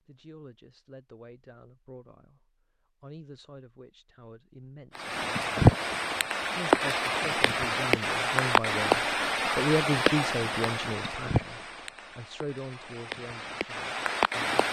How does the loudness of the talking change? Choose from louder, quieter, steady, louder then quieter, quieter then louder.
louder then quieter.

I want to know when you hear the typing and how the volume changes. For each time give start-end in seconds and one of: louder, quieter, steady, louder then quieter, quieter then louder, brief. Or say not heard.
not heard.